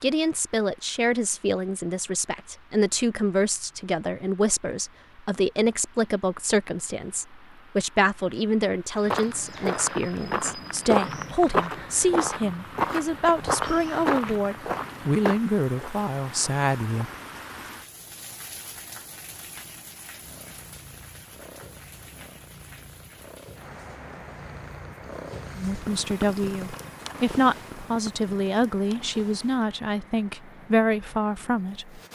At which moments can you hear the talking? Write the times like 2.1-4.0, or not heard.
0.0-17.1, 25.6-32.0.